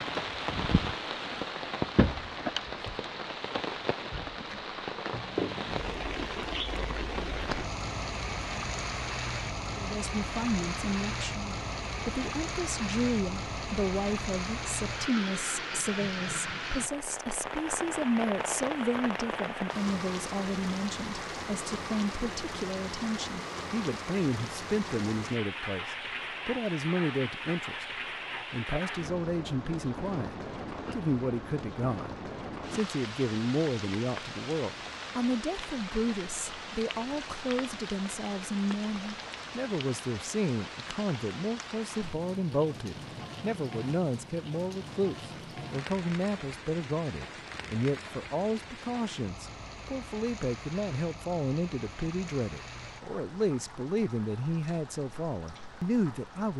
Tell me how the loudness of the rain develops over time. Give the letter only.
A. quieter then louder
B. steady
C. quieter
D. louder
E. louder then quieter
C.